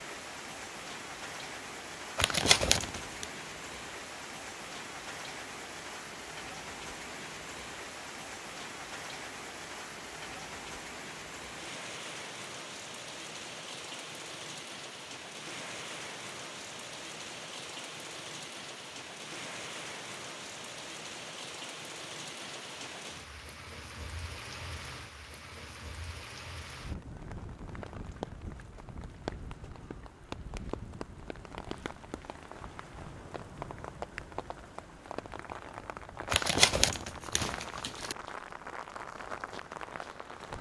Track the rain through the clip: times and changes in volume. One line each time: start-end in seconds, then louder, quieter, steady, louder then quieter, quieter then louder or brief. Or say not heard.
0.0-40.5 steady.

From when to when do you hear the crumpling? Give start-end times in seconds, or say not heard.
2.1-3.2, 36.3-38.1.